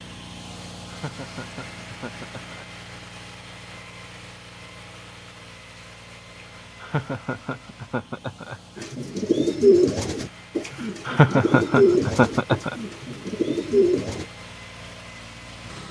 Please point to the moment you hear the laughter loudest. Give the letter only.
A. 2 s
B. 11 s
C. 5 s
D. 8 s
B.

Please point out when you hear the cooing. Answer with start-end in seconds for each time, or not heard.
8.8-14.2.